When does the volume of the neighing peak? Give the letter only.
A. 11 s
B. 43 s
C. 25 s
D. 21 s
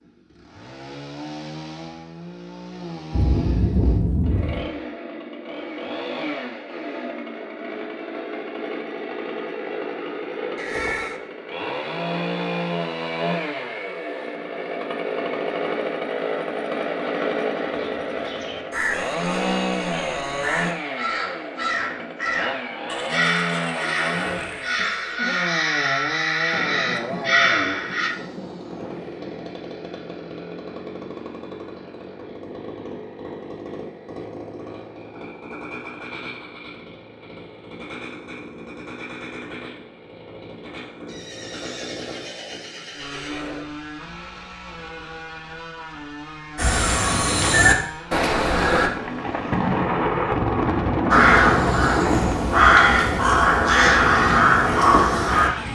A.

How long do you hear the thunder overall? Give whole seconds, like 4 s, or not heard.
8 s.